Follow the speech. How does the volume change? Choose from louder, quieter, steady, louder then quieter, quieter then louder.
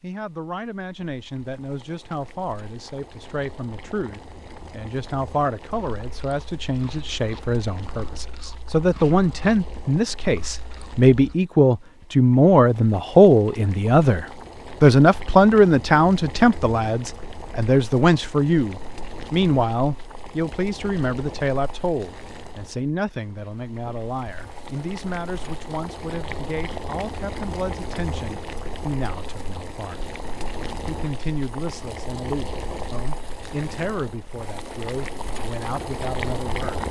louder then quieter.